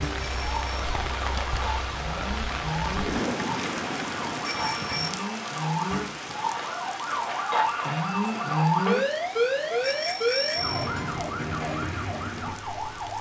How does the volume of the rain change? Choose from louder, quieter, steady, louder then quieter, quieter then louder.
quieter.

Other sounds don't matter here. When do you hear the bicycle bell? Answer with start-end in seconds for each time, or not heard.
0.2-0.7, 4.4-5.1, 9.8-10.9.